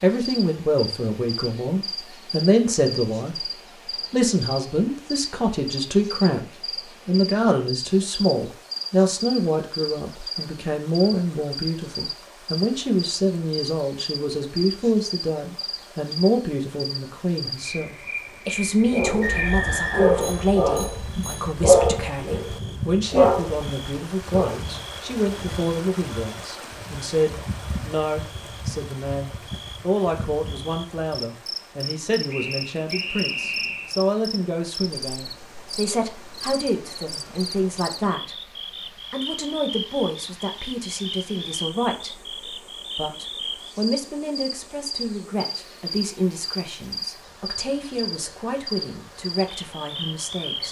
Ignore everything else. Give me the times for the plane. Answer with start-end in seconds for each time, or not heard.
not heard.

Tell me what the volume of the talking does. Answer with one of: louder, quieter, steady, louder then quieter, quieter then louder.
quieter.